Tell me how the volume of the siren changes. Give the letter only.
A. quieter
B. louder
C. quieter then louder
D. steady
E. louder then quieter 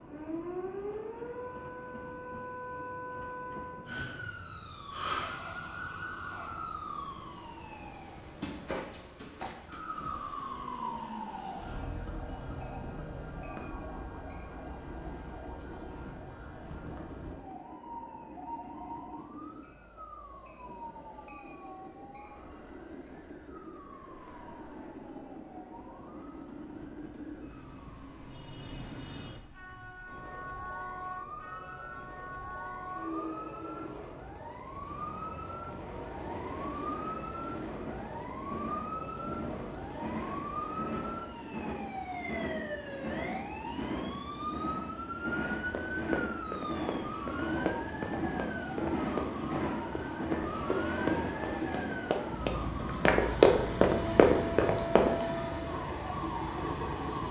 C.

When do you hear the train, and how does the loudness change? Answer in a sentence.
The train can be heard from 0.0 to 57.2 s, getting louder.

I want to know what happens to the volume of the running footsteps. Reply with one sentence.
The volume of the running footsteps goes up.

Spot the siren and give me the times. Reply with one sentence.
The siren can be heard from 0.0 to 57.2 s.